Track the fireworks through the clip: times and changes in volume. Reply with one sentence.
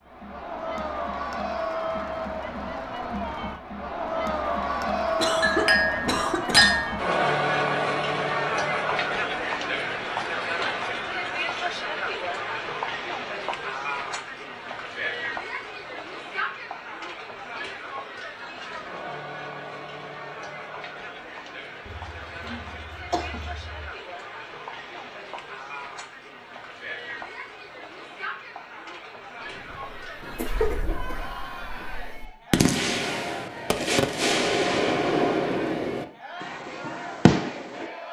The fireworks can be heard from 29.6 to 37.9 s, getting louder.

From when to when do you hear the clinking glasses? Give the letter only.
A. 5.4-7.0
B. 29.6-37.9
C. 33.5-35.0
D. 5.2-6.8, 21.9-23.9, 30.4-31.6
A.